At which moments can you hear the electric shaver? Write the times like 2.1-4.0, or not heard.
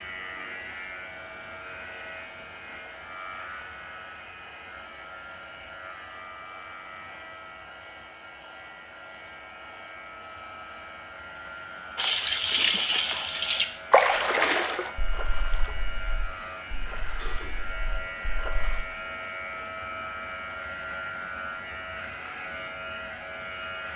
0.0-23.9.